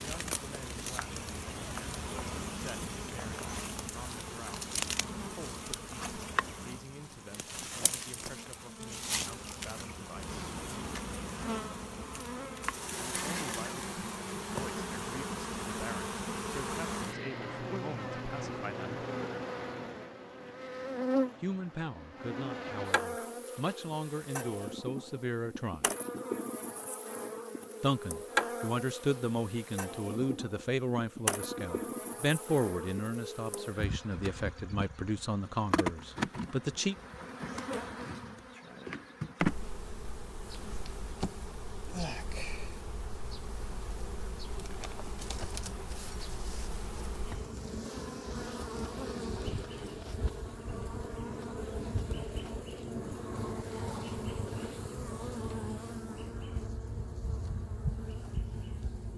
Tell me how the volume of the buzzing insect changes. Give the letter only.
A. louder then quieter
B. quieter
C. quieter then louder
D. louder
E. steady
E.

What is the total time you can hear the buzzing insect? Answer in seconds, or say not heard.
59 s.